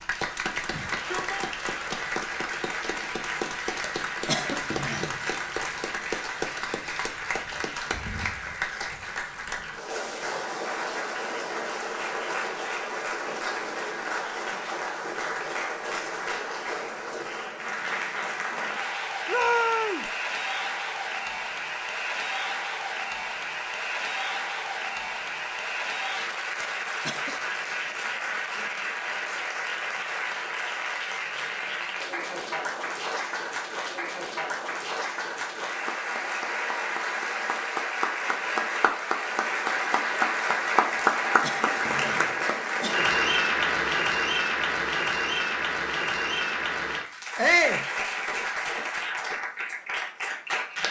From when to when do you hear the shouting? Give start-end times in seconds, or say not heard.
0.7-1.6, 19.2-20.1, 47.4-47.9.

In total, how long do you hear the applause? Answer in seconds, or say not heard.
51 s.